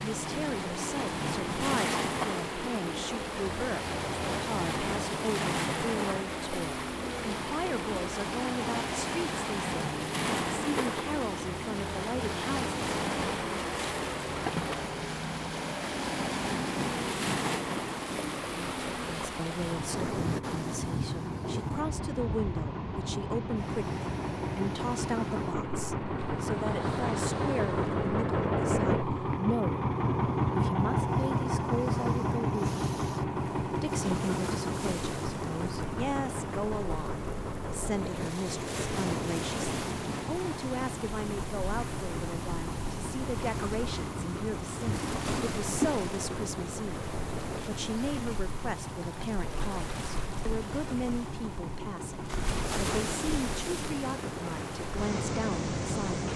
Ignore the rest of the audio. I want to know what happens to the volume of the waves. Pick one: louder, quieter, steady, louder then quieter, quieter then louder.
quieter then louder.